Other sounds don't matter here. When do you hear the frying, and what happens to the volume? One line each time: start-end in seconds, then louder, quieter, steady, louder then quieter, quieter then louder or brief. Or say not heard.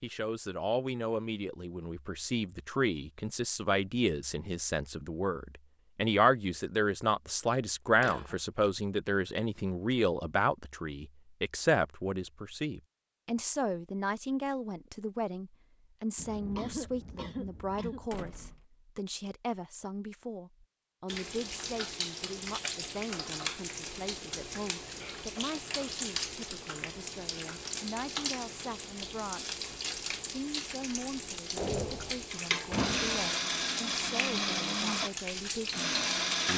21.1-36.5 steady.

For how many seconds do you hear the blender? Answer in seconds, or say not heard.
4 s.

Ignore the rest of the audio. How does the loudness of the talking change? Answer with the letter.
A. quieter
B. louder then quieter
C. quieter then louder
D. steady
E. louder
A.